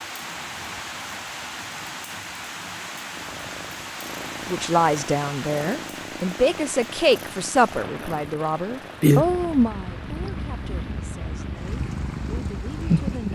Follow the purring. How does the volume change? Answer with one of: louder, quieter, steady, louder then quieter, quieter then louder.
louder then quieter.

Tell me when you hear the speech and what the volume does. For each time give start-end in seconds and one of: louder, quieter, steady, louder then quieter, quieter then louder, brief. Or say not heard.
4.5-13.3 quieter.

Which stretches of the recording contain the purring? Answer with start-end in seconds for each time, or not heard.
3.1-13.3.